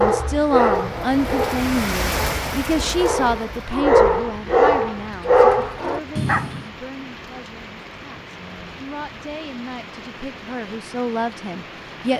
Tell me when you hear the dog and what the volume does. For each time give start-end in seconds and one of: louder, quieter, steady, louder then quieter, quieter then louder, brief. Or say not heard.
0.0-6.7 quieter then louder.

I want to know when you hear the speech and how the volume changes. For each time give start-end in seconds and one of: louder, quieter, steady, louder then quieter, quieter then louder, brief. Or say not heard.
0.0-12.1 quieter then louder.